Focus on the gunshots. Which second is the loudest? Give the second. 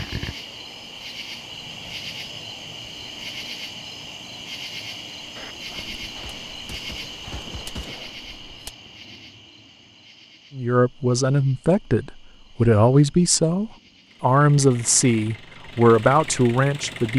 8 s.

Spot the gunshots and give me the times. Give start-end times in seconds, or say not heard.
5.3-8.8.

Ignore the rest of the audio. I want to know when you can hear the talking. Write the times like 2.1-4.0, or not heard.
10.6-17.1.